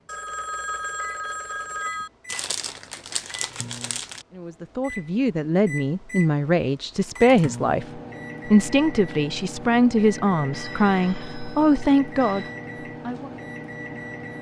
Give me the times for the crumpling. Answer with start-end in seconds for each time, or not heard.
2.2-4.2.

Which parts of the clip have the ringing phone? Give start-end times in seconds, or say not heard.
0.1-2.1, 10.5-12.6.